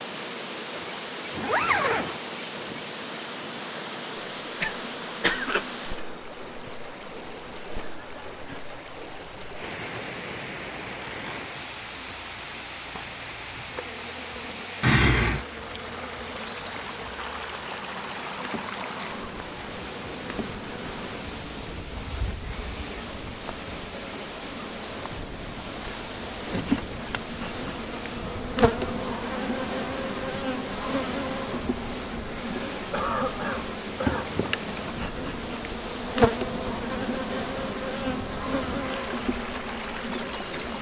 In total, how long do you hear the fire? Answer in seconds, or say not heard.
not heard.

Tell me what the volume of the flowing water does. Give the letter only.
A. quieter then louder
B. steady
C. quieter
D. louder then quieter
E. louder
B.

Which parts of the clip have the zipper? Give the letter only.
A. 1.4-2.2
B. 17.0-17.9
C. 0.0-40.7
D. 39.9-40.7
A.